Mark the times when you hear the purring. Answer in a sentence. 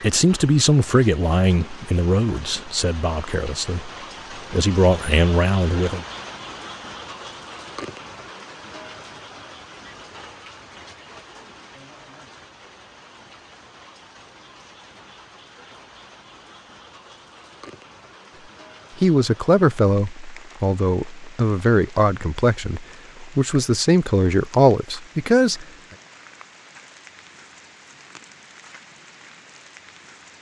You can't hear the purring here.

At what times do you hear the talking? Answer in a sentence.
You can hear the talking from 0.0 to 3.9 s, from 4.5 to 6.0 s and from 19.0 to 25.6 s.